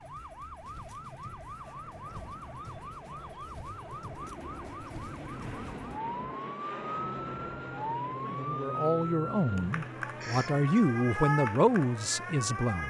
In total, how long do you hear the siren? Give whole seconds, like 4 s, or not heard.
13 s.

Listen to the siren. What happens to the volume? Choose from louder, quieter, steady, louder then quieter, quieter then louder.
louder.